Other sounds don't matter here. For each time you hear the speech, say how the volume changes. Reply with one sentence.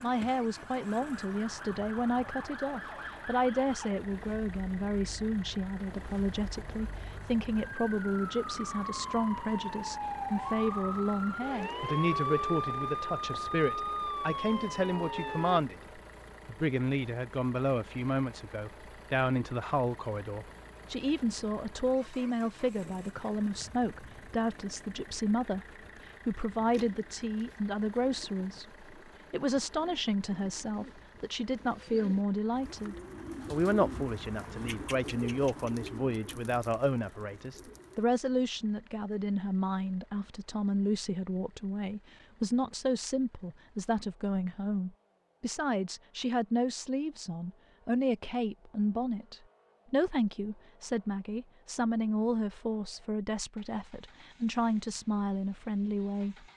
The speech can be heard from 0.0 to 56.5 s, at a steady volume.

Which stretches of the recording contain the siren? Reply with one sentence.
The siren can be heard from 0.0 to 15.6 s.